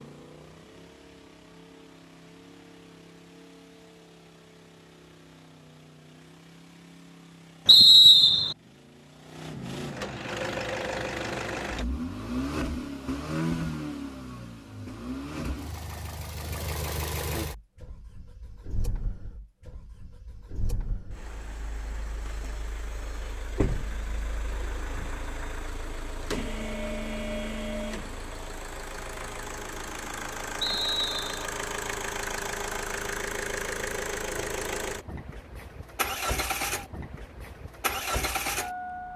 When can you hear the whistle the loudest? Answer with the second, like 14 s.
8 s.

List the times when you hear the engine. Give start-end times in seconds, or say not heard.
0.0-39.1.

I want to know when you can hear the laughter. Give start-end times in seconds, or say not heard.
not heard.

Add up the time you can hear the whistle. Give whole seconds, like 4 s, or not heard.
2 s.